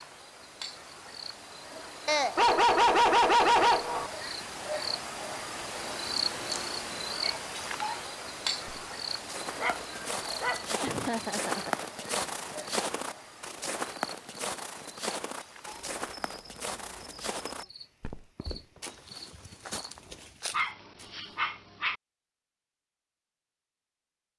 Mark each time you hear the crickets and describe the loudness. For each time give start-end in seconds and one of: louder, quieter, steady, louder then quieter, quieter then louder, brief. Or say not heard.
0.0-20.6 louder then quieter.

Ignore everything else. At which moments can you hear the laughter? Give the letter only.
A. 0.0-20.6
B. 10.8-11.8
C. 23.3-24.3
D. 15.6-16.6
B.